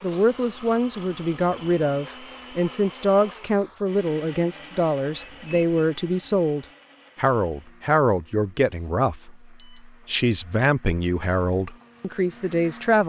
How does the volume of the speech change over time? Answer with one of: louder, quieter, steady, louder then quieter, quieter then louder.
steady.